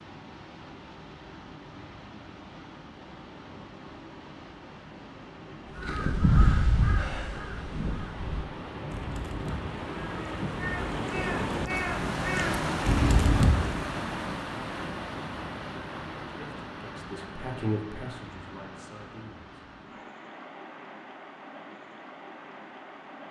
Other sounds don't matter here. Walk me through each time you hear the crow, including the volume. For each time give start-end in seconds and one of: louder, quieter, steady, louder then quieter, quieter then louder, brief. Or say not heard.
5.7-13.9 quieter then louder.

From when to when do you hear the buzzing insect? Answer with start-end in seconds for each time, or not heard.
not heard.